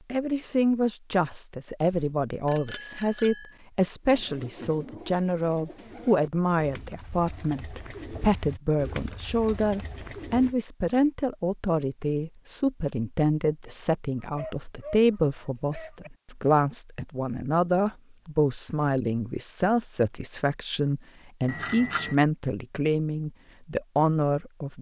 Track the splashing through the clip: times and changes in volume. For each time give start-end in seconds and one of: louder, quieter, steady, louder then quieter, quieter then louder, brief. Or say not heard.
not heard.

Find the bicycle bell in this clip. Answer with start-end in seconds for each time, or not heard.
1.9-3.5, 21.4-22.1.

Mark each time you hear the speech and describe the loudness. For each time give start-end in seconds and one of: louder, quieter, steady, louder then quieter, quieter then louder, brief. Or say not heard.
0.1-24.7 steady.